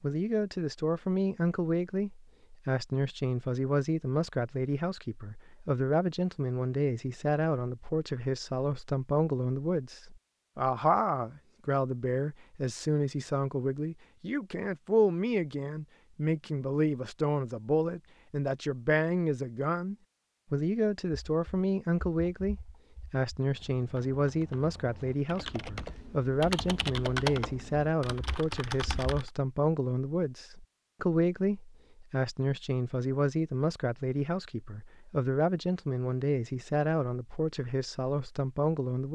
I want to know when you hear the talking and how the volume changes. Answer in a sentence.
The talking can be heard from 0.0 to 39.1 s, at a steady volume.